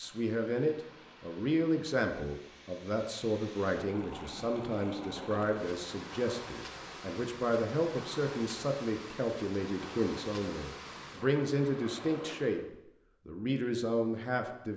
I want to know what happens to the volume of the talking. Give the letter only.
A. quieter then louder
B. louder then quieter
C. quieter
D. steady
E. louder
D.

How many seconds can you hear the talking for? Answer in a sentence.
The talking can be heard for 15 seconds in total.